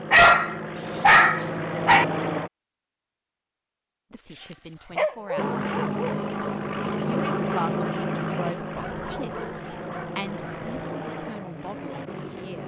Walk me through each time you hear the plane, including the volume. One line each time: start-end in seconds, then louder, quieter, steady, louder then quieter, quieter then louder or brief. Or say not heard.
0.0-2.5 brief
5.3-12.6 quieter.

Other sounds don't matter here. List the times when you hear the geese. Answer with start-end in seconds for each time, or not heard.
not heard.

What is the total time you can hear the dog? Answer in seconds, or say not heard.
6 s.